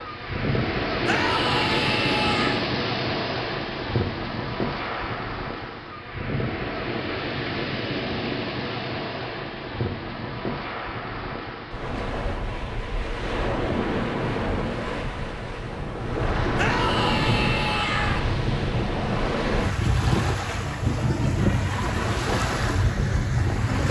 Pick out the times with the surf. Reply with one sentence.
You can hear the surf from 0.0 to 23.8 s.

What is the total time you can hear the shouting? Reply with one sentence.
The shouting can be heard for 3 seconds in total.